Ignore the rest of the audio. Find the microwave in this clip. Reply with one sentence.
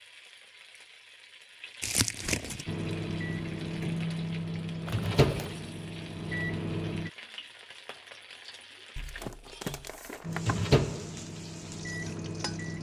You can hear the microwave from 2.6 to 7.1 s and from 10.2 to 12.7 s.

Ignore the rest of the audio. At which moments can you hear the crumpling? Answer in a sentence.
You can hear the crumpling from 1.8 to 2.6 s, from 4.8 to 5.6 s and from 8.9 to 10.8 s.